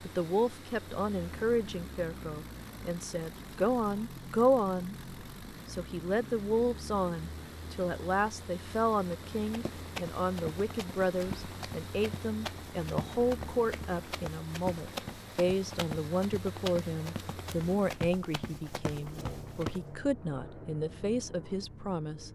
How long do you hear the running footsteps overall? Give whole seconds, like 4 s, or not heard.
11 s.